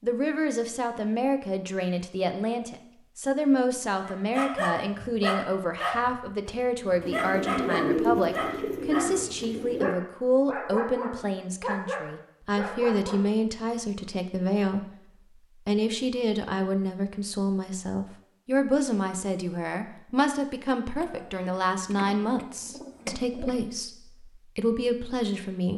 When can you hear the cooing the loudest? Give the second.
8 s.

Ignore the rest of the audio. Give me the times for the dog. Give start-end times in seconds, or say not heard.
4.0-13.2.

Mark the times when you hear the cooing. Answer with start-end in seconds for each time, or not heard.
7.0-9.9, 20.9-23.6.